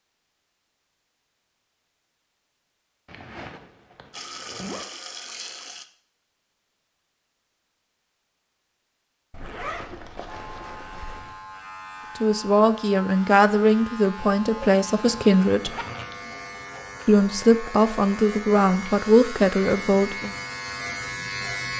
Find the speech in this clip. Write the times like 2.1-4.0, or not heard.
12.2-15.8, 17.1-20.4.